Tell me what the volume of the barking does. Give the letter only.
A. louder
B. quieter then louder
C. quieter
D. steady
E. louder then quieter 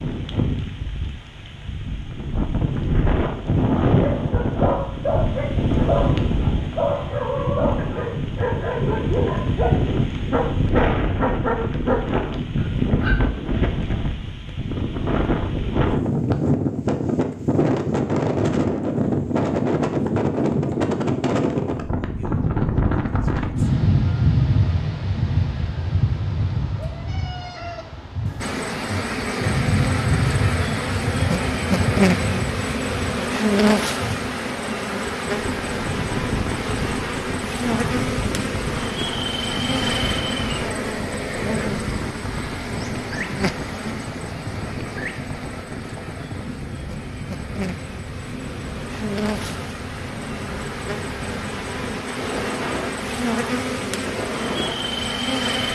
D.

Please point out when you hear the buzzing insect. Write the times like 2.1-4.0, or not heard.
28.4-55.7.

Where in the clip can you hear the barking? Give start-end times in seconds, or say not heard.
4.0-13.2.